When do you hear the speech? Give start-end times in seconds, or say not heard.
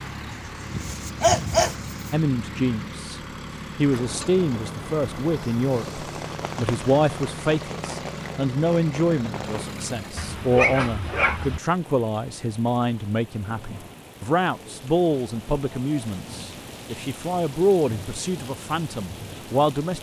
2.1-19.9.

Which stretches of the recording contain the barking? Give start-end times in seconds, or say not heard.
0.3-2.1, 10.2-11.6.